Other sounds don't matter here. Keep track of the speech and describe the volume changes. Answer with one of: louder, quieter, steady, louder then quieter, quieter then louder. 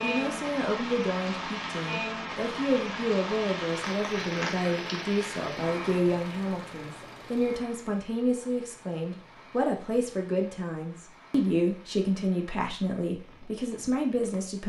steady.